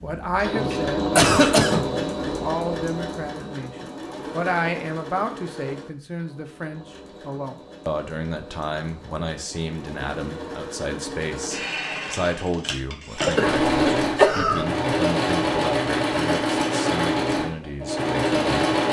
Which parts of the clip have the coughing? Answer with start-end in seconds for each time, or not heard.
1.1-1.9, 13.2-14.7.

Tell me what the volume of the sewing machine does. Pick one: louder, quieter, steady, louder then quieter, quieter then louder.
quieter then louder.